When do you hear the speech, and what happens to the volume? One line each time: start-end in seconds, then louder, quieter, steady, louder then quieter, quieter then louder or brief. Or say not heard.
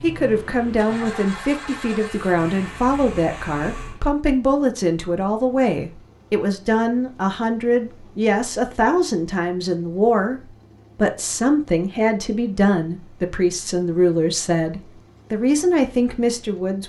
0.0-16.8 steady.